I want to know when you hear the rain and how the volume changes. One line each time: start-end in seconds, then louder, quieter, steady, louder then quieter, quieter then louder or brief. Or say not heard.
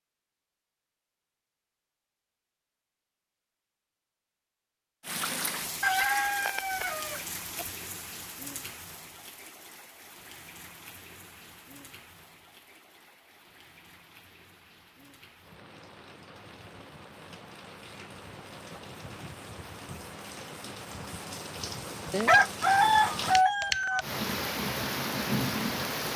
5.0-26.1 quieter then louder.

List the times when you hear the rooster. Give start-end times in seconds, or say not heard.
5.8-7.7, 22.1-24.1.